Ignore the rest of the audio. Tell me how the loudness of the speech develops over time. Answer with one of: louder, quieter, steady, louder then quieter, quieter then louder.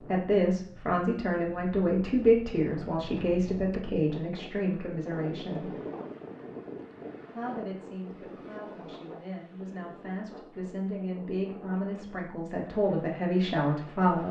quieter then louder.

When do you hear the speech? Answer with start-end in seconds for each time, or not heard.
0.1-5.7, 7.3-14.2.